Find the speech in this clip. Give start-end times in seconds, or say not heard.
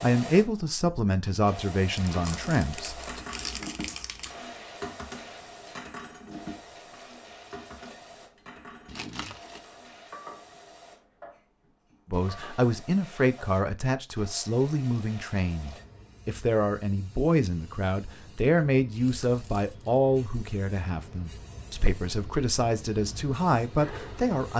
0.0-3.2, 12.1-24.5.